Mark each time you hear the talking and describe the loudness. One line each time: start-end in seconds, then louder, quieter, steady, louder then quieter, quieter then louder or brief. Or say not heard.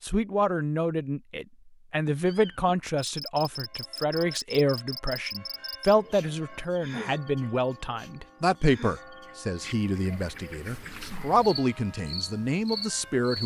0.0-13.4 steady.